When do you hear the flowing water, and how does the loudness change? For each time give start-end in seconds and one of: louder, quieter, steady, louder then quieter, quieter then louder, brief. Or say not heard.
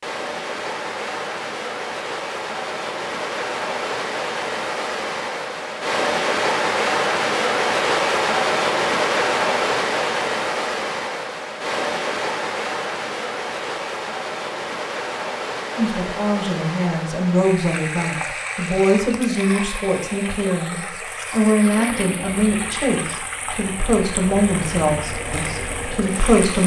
0.0-26.6 louder then quieter.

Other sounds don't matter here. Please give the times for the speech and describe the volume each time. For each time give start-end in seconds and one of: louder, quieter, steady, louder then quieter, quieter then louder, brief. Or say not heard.
15.8-26.6 steady.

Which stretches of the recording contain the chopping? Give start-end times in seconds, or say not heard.
not heard.